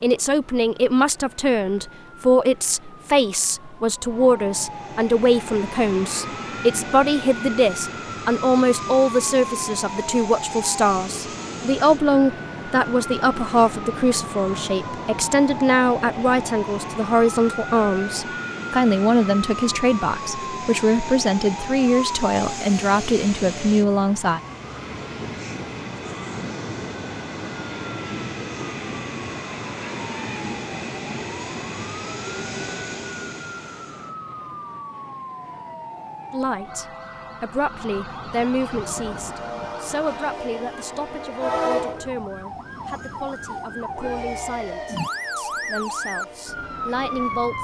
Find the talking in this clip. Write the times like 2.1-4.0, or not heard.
0.0-24.4, 36.3-47.5.